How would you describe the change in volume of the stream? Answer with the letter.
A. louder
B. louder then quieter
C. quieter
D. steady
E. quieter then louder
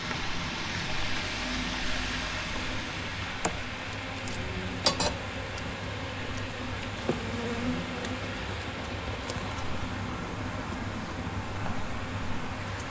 C.